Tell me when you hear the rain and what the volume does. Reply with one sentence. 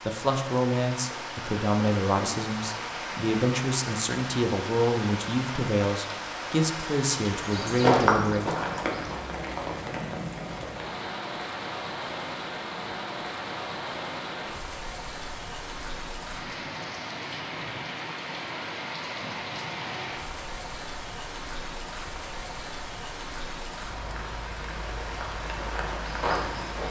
The rain can be heard from 0.0 to 26.8 s, at a steady volume.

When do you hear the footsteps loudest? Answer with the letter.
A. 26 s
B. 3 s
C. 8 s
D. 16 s
C.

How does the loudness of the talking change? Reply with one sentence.
The loudness of the talking stays about the same.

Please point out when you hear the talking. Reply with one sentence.
The talking can be heard from 0.0 to 8.5 s.